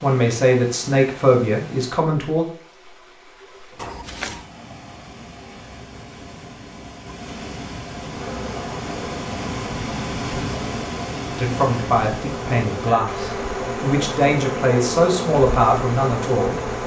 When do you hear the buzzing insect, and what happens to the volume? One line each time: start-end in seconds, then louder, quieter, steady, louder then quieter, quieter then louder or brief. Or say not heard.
8.1-16.8 louder.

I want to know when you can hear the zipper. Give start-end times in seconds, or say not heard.
3.8-4.5.